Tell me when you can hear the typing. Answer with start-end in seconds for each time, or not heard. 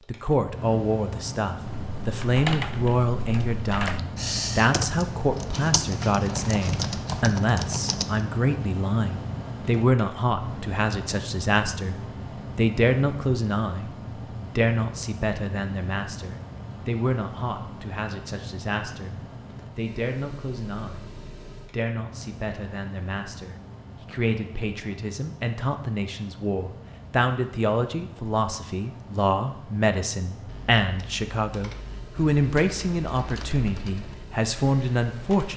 1.6-8.2, 30.4-35.5.